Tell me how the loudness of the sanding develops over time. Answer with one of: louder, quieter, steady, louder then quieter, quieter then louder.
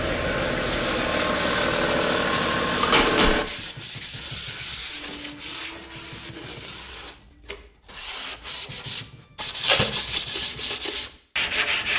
quieter then louder.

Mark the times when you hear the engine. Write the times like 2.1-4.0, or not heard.
0.0-3.5.